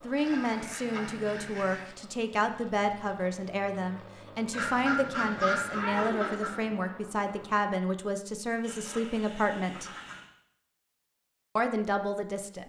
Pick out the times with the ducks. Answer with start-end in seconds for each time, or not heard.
0.1-1.9, 4.5-6.5, 8.6-10.2.